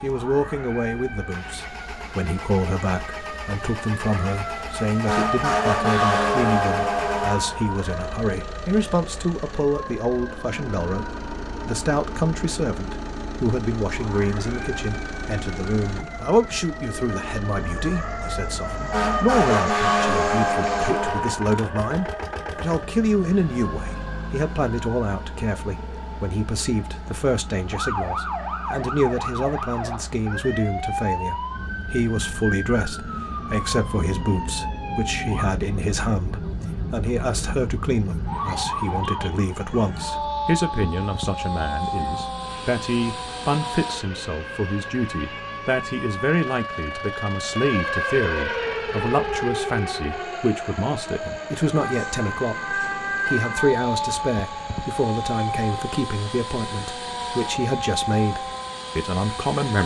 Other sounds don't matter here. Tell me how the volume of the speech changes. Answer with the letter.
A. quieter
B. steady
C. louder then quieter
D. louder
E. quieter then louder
B.